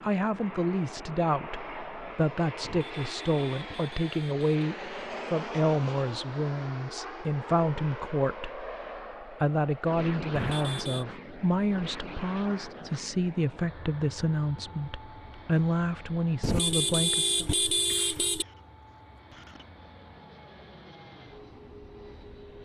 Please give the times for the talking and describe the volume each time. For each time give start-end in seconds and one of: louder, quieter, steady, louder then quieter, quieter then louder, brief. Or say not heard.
0.0-17.4 steady.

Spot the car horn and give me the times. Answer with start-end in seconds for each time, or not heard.
2.6-4.5, 10.3-11.1, 16.4-18.4.